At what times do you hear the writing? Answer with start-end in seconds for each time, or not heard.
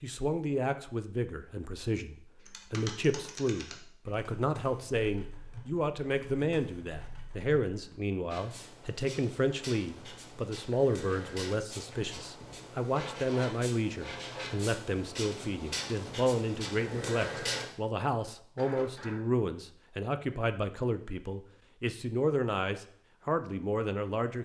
8.2-17.6.